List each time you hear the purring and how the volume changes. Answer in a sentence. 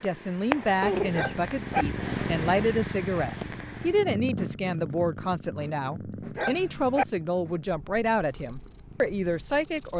You can hear the purring from 0.0 to 9.9 s, getting quieter.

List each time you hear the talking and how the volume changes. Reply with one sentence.
The talking can be heard from 0.0 to 9.9 s, at a steady volume.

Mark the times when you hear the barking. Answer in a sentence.
You can hear the barking from 1.1 to 1.9 s and from 6.3 to 7.0 s.